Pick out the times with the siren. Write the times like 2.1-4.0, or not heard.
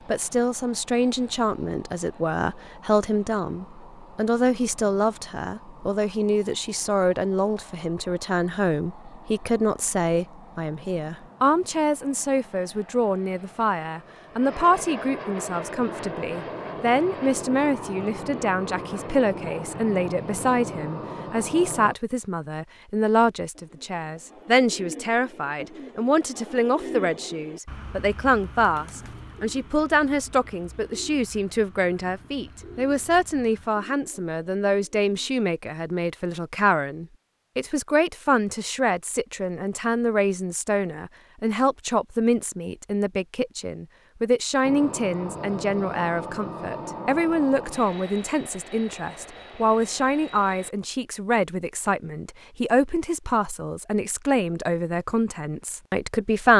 not heard.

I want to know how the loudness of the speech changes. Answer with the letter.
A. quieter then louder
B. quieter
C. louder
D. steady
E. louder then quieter
D.